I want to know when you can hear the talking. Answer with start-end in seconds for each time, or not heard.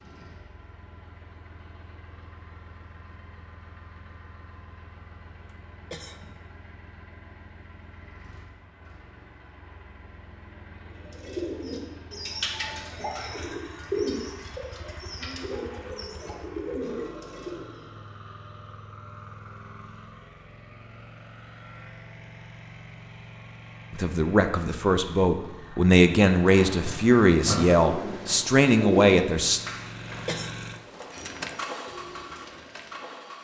23.9-29.6.